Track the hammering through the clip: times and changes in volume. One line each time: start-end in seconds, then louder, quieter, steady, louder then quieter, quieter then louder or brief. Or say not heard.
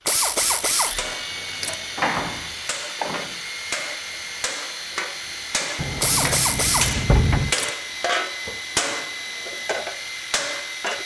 0.3-11.0 louder.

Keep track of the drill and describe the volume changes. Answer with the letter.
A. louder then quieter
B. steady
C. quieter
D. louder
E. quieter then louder
B.